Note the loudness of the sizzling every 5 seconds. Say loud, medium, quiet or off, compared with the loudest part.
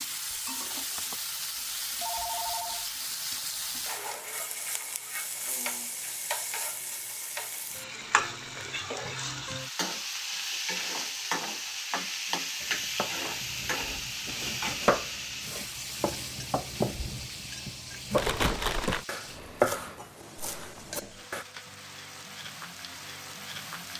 loud, loud, loud, medium, medium.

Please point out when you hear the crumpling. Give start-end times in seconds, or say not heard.
8.2-8.8, 18.1-19.1.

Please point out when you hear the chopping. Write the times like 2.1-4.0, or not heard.
12.6-21.4.